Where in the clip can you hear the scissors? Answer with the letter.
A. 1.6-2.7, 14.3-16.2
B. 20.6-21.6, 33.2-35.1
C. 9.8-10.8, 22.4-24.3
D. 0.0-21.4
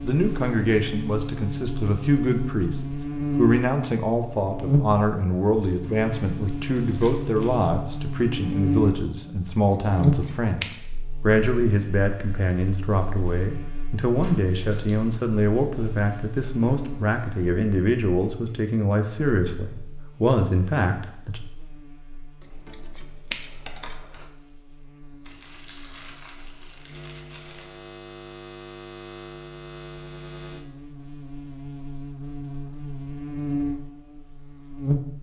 C.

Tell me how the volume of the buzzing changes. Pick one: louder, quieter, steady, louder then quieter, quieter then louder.
quieter then louder.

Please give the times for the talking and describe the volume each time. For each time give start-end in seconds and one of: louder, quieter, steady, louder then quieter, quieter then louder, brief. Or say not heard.
0.0-21.4 steady.